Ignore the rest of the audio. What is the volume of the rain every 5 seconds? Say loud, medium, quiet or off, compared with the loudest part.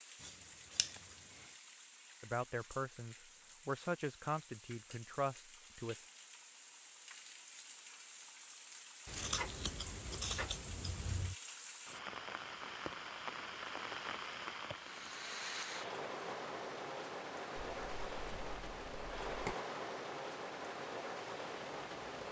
quiet, medium, loud, loud, loud.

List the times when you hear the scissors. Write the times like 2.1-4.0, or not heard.
0.2-0.9, 9.1-11.3, 17.6-19.6.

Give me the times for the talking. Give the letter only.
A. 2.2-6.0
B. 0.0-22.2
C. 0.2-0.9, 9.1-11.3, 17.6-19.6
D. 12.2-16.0
A.